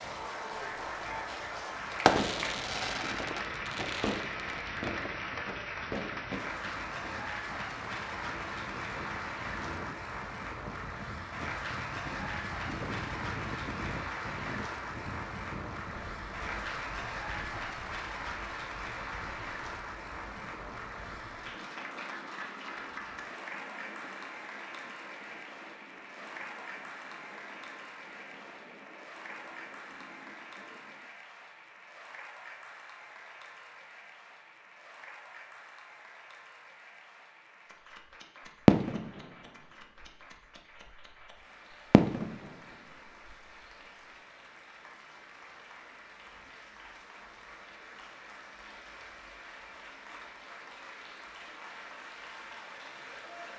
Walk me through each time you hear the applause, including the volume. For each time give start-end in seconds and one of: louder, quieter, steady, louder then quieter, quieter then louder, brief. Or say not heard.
0.0-53.5 quieter.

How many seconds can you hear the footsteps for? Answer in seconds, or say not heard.
not heard.